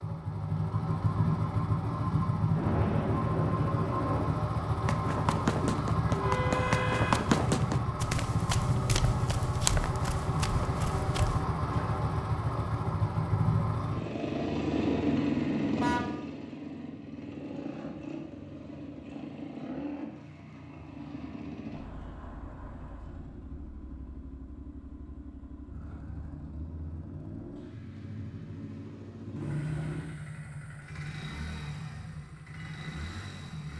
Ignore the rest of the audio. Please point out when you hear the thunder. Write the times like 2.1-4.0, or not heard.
2.5-4.4.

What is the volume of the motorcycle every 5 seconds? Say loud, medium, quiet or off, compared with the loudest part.
loud, loud, loud, loud, quiet, quiet, medium.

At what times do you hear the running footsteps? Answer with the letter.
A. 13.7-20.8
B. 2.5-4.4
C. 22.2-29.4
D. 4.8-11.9
D.